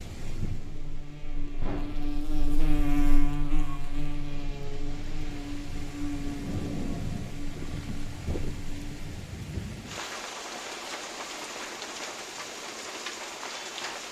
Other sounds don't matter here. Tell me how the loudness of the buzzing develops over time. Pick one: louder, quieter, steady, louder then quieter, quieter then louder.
louder then quieter.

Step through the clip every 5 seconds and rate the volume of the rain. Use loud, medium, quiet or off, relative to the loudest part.
medium, loud, loud.